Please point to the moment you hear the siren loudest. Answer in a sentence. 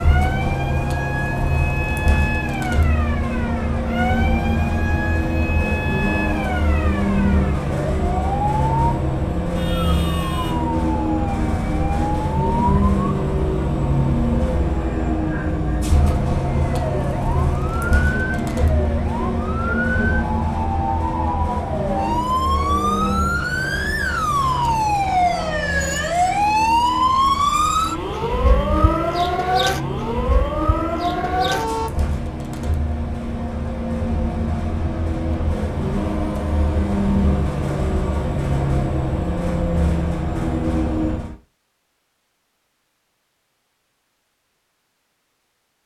The volume of the siren peaks at 27 seconds.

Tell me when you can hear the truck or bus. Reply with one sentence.
The truck or bus can be heard from 0.0 to 41.4 s.